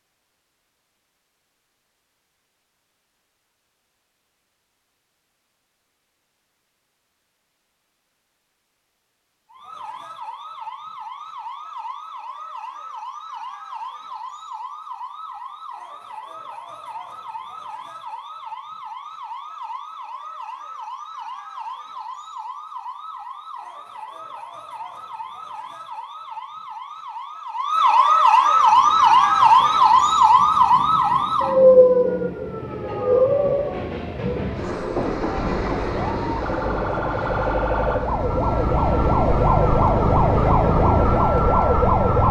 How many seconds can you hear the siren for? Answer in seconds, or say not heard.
33 s.